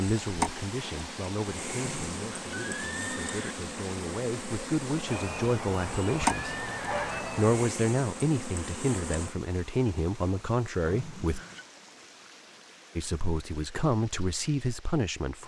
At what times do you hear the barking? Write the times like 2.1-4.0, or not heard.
5.0-7.6.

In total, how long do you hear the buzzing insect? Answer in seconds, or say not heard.
9 s.